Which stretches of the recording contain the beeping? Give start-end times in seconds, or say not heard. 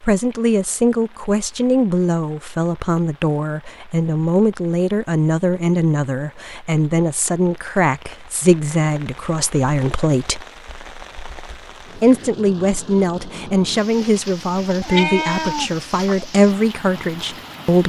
not heard.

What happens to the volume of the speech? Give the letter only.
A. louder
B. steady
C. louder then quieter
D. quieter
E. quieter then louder
B.